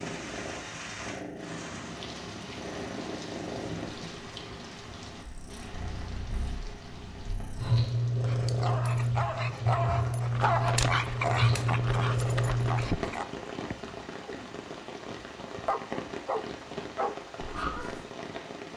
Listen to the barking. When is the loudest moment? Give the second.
11 s.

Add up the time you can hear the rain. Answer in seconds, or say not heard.
19 s.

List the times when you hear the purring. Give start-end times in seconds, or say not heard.
0.0-12.8.